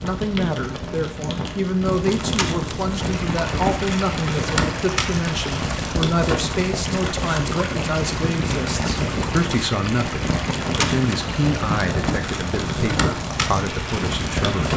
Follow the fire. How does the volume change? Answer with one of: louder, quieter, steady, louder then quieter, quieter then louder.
steady.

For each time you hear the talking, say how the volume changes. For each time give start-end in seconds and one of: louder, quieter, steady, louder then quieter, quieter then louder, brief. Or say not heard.
0.0-14.7 steady.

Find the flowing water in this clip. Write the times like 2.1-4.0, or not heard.
2.9-14.7.